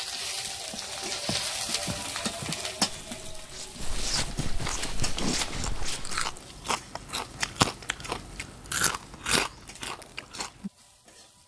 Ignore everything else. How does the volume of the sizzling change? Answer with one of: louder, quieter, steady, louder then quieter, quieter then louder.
quieter.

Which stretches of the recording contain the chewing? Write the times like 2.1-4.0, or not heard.
4.5-10.7.